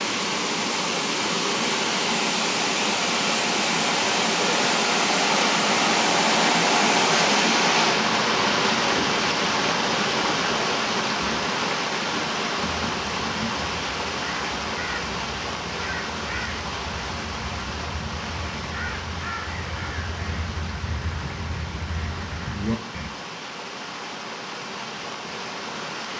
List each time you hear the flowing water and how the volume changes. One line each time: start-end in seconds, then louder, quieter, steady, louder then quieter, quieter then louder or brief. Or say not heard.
0.0-26.1 quieter.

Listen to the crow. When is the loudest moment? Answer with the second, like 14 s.
23 s.